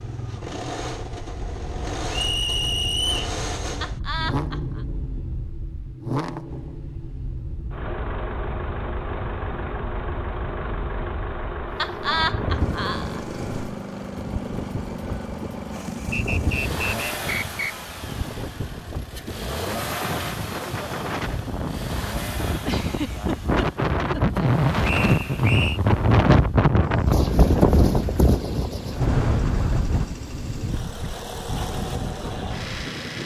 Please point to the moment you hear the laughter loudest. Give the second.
12 s.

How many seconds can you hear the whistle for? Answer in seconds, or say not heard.
4 s.